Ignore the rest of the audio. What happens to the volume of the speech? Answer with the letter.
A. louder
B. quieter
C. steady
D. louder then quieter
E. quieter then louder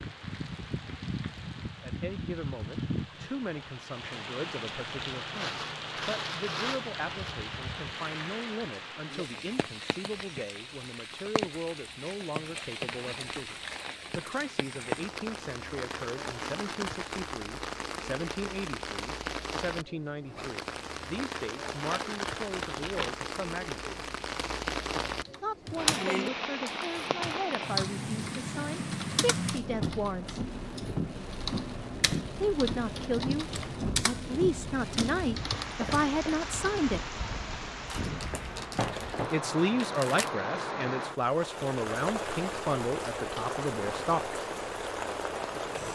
A.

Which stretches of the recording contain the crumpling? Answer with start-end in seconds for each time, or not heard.
5.3-7.3, 21.9-23.1, 37.9-39.2, 39.8-40.3.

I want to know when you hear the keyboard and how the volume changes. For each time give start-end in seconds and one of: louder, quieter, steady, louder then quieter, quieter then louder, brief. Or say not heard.
25.2-34.2 quieter
35.0-36.8 brief.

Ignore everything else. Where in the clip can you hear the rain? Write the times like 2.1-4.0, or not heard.
0.0-45.9.